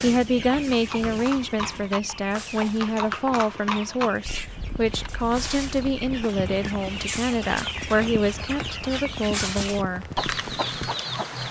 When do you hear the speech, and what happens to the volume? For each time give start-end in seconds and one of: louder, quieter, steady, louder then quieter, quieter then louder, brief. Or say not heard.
0.0-10.1 steady.